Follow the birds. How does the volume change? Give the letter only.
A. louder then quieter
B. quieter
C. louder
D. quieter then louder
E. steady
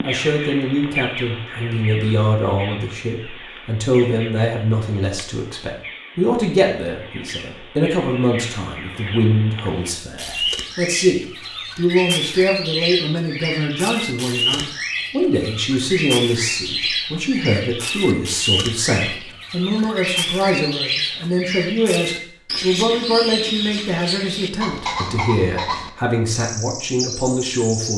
C.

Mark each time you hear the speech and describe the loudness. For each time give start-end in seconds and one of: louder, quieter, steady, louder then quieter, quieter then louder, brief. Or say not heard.
0.0-27.9 steady.